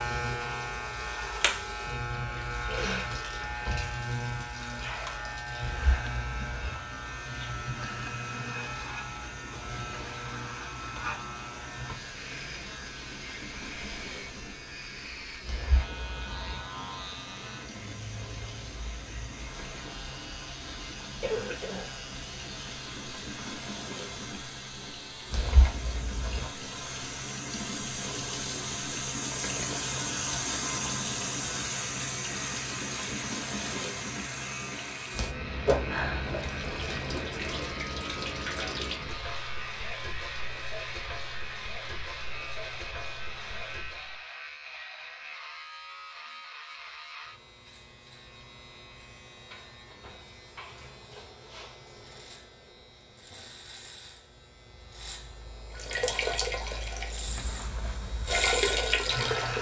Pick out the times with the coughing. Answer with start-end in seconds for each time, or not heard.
21.2-21.9.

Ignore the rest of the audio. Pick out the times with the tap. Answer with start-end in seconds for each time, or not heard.
0.0-44.2, 55.7-59.5.